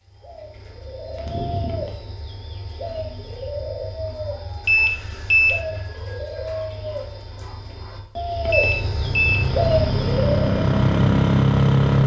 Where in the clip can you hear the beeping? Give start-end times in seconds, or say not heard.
1.2-1.9, 4.7-5.5, 8.5-9.4.